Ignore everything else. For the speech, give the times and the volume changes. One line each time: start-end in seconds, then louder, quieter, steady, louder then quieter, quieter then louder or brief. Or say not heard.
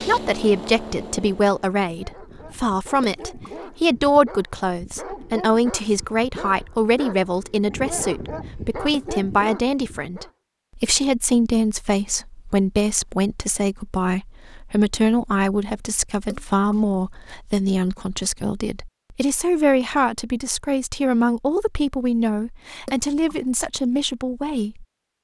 0.0-24.9 steady.